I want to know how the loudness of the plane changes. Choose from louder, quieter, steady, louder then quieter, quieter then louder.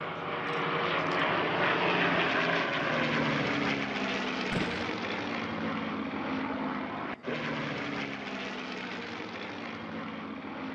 quieter.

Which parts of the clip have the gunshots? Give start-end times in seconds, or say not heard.
4.5-5.0.